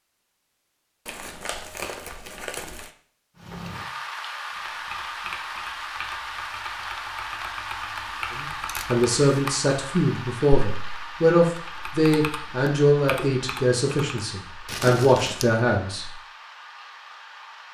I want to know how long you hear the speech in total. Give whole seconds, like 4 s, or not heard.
8 s.